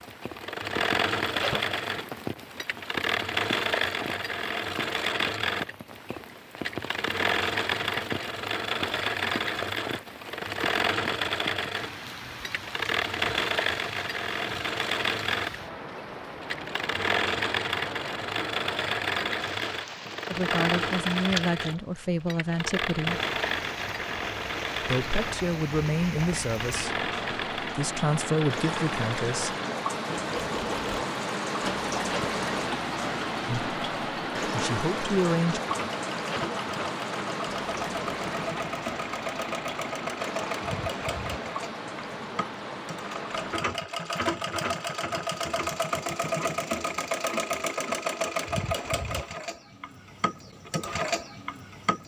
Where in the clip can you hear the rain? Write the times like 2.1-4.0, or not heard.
0.0-43.6.